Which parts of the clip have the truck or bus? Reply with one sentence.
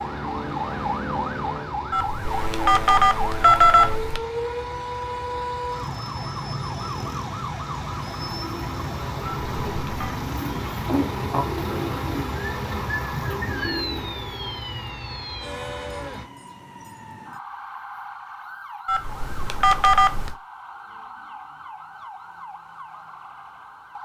You can hear the truck or bus from 0.0 to 16.2 s.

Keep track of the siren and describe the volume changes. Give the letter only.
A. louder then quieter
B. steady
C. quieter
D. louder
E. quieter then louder
C.